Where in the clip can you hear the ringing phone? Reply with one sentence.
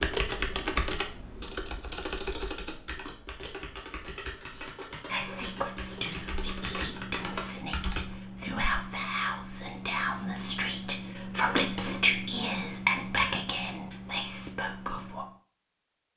The ringing phone can't be heard in this clip.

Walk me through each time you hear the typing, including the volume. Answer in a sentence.
The typing can be heard from 0.0 to 8.2 s, getting quieter then louder.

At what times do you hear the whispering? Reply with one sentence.
The whispering can be heard from 4.5 to 15.2 s.